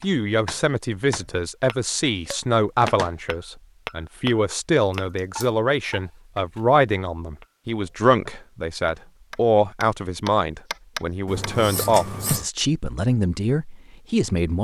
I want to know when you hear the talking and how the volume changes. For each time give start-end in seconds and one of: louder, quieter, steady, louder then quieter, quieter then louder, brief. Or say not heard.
0.0-14.5 steady.